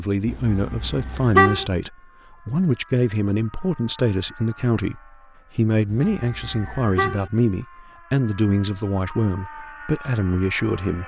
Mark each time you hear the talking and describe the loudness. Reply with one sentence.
You can hear the talking from 0.0 to 11.0 s, at a steady volume.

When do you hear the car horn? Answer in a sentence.
The car horn can be heard from 0.2 to 1.6 s and from 5.8 to 7.3 s.